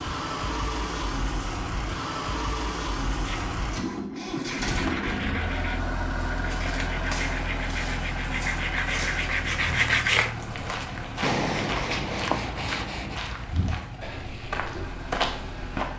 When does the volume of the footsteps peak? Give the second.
15 s.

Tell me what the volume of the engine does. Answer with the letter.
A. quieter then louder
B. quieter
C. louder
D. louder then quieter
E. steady
B.